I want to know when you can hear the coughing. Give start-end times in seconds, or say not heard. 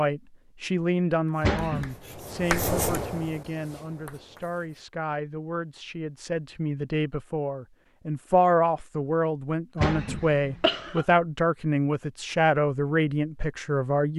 1.4-1.9, 9.8-11.1.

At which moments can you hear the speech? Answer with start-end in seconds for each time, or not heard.
0.0-14.1.